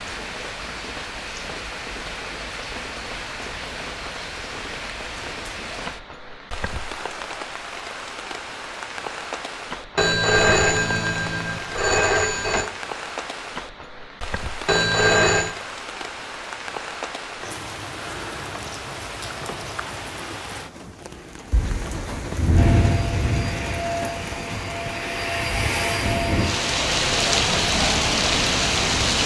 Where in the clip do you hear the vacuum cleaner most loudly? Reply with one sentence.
The loudest moment of the vacuum cleaner is at 26 seconds.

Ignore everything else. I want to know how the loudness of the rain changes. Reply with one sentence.
The volume of the rain goes up.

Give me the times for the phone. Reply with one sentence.
You can hear the phone from 9.9 to 12.7 s and from 14.7 to 15.6 s.